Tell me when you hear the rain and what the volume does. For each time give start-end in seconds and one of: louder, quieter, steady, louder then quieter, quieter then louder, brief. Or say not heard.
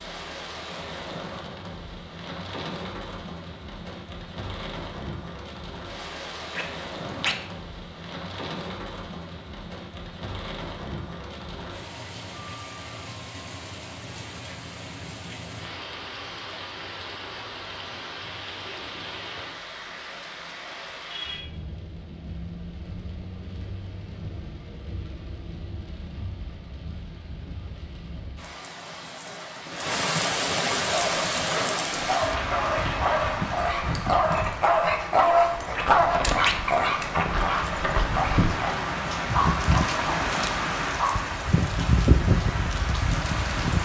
0.0-43.8 louder.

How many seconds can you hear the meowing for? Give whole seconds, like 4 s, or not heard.
2 s.